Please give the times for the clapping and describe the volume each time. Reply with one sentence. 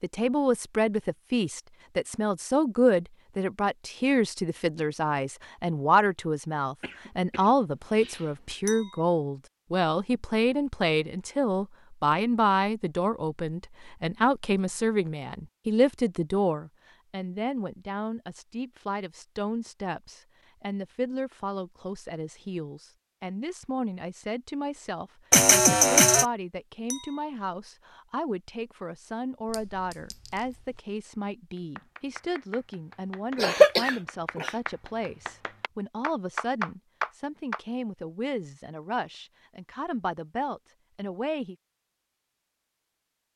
You can hear the clapping from 31.6 to 37.6 s, getting louder.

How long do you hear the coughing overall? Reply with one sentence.
The coughing can be heard for 4 seconds in total.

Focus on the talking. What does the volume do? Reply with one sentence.
The volume of the talking goes down.